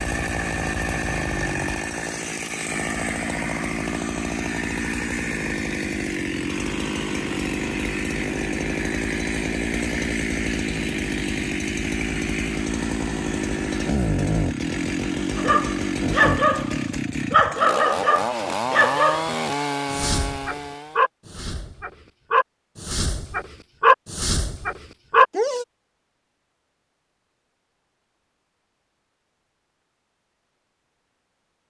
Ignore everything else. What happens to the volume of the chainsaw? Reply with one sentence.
The volume of the chainsaw stays about the same.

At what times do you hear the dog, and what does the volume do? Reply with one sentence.
You can hear the dog from 15.3 to 25.6 s, getting quieter then louder.